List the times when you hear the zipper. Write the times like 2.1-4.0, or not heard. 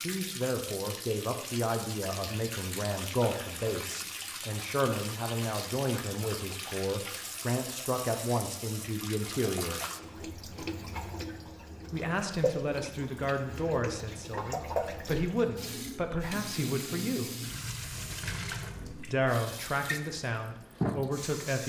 not heard.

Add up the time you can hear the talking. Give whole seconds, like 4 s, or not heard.
18 s.